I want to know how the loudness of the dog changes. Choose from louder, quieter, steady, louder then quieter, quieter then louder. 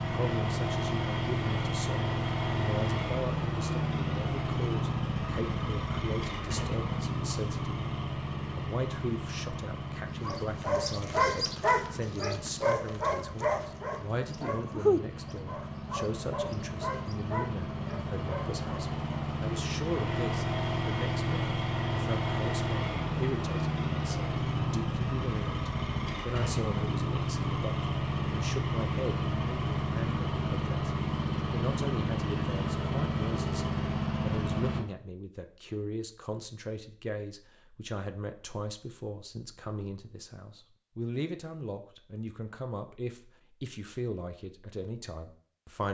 quieter.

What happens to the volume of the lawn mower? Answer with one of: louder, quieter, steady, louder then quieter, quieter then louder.
quieter then louder.